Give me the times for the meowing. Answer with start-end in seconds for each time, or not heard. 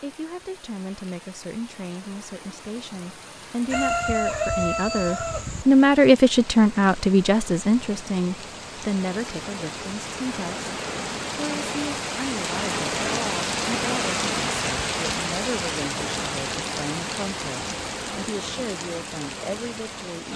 not heard.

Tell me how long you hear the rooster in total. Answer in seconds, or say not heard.
2 s.